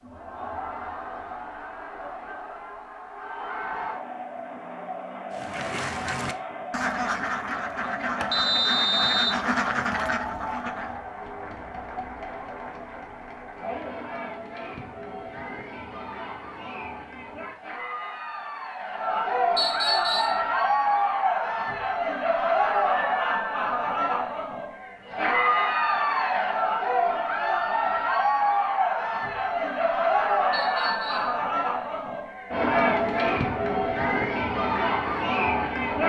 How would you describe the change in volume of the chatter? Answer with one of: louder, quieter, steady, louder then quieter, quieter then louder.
louder.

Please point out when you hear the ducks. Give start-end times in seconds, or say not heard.
5.3-11.0.